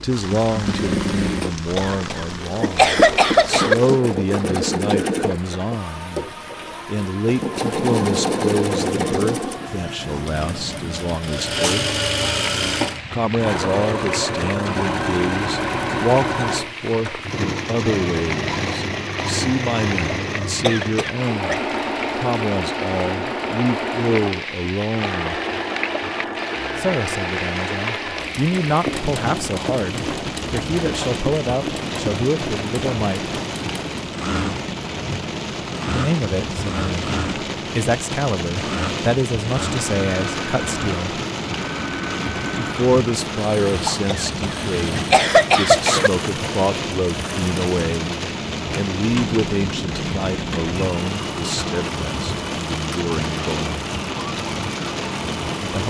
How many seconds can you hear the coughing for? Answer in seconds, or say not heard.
5 s.